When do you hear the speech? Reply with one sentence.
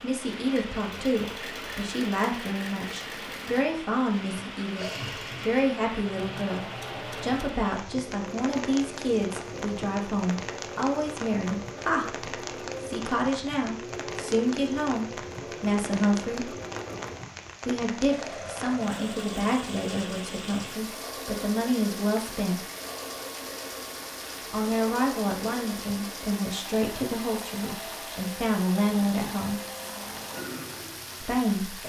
You can hear the speech from 0.0 to 12.1 s, from 12.8 to 16.6 s, from 17.6 to 22.6 s, from 24.5 to 29.6 s and from 31.2 to 31.8 s.